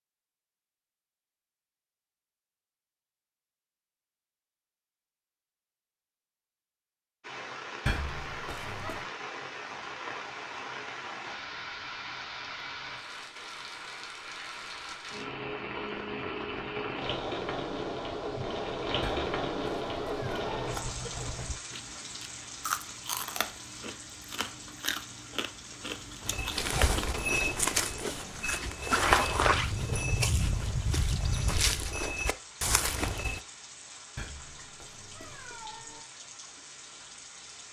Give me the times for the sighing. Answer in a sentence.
You can't hear the sighing here.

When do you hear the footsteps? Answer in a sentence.
You can hear the footsteps from 26.2 to 33.4 s.